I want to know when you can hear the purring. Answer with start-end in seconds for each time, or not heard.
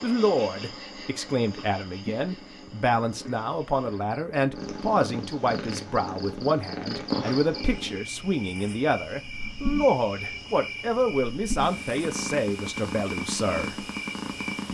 0.0-14.6.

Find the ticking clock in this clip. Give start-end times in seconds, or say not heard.
not heard.